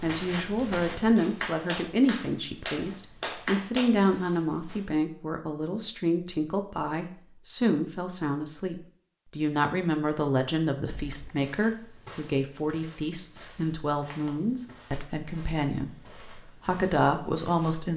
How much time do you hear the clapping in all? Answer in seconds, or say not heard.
4 s.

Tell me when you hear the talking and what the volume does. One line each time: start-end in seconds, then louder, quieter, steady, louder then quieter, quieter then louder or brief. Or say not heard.
0.0-17.9 steady.